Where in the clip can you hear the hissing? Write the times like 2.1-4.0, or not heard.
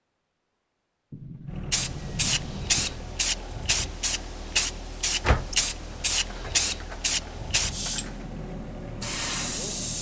1.7-9.9.